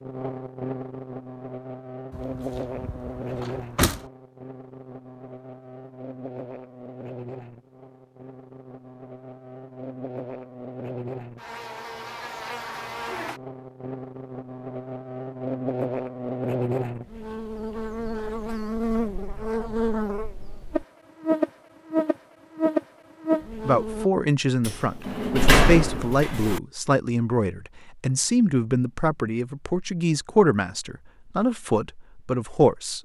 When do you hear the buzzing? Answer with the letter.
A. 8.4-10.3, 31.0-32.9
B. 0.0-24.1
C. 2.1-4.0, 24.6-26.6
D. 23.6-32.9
B.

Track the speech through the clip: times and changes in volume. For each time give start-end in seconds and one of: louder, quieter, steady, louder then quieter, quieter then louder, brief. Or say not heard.
23.6-32.9 steady.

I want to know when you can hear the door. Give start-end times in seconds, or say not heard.
2.1-4.0, 24.6-26.6.